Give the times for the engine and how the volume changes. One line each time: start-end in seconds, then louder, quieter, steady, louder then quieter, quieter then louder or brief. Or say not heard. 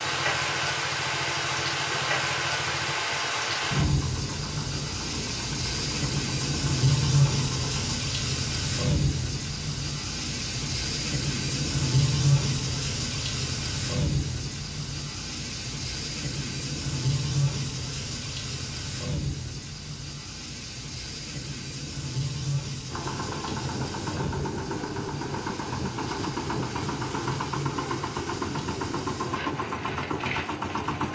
0.0-8.0 steady
22.9-31.1 steady.